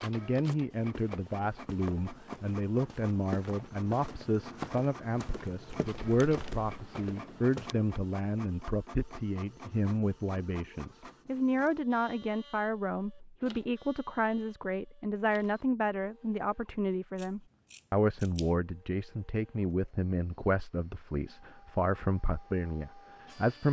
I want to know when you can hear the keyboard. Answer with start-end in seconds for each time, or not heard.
not heard.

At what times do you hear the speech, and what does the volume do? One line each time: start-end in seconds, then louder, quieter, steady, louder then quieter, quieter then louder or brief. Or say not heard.
0.0-23.6 steady.